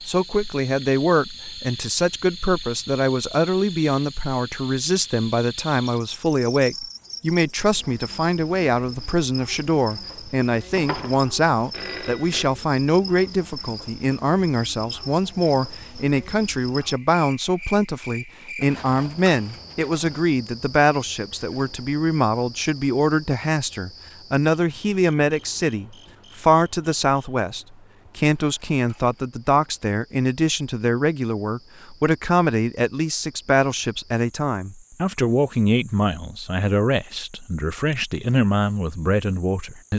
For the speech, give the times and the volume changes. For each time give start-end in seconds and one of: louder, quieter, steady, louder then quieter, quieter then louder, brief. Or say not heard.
0.1-39.9 steady.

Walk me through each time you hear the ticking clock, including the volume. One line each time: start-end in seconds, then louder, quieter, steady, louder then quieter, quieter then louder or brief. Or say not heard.
not heard.